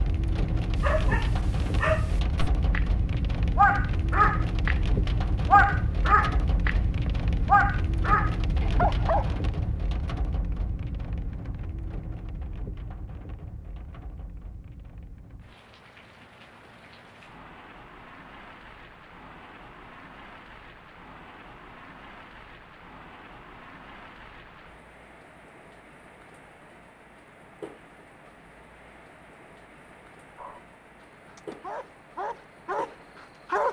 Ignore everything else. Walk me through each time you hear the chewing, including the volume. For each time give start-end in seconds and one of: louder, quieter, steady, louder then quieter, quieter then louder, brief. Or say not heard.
not heard.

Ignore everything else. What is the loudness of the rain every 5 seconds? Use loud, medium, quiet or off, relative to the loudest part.
loud, loud, medium, quiet, quiet, quiet, quiet.